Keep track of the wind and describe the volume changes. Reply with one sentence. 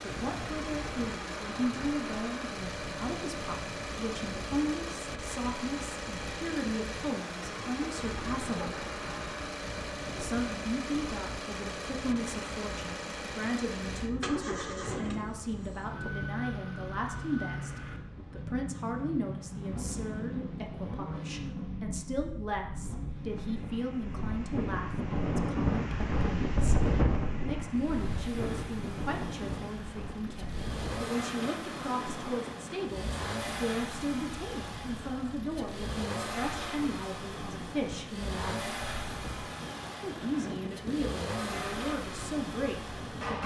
The loudness of the wind goes up, then down.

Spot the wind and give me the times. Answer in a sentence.
You can hear the wind from 0.0 to 43.4 s.